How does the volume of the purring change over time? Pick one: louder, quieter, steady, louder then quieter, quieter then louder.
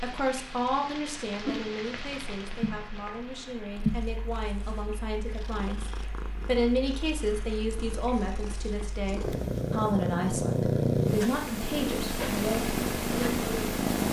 quieter then louder.